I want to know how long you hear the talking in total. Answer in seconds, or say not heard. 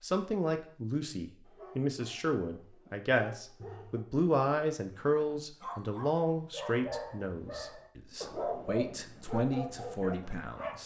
11 s.